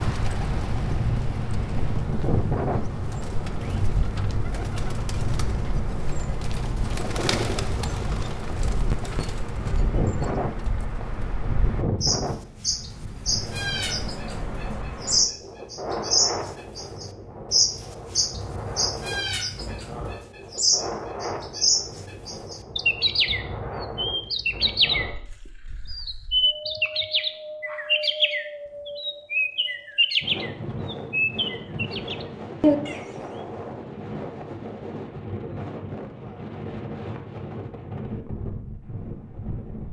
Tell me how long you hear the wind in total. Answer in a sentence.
The wind can be heard for 40 seconds in total.